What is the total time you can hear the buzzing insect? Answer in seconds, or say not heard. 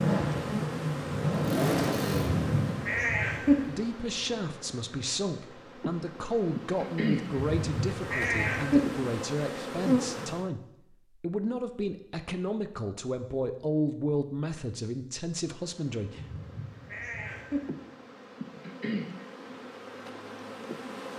16 s.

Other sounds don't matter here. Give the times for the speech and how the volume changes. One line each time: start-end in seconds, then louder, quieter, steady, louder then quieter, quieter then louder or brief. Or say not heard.
3.5-16.4 steady.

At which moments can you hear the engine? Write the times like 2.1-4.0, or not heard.
0.0-2.8.